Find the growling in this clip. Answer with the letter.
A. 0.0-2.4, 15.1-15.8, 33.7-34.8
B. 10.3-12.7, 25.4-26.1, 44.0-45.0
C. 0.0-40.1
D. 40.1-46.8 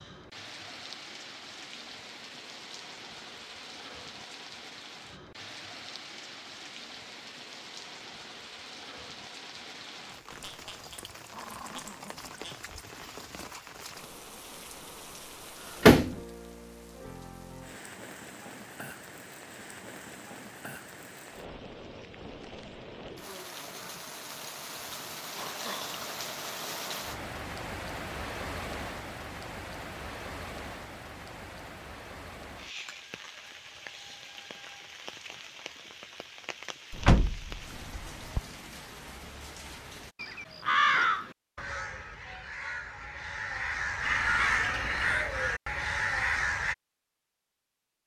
B.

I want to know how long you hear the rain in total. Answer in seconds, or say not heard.
40 s.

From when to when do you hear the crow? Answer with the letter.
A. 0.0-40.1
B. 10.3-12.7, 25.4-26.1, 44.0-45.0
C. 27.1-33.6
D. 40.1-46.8
D.